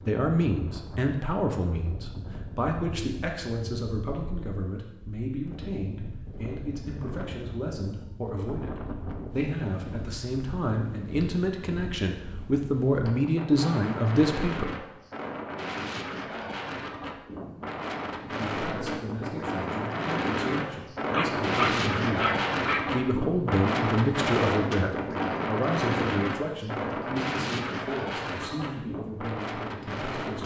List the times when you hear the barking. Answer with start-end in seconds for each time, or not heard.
21.1-22.9.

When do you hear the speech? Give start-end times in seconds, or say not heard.
0.1-14.8, 18.2-30.4.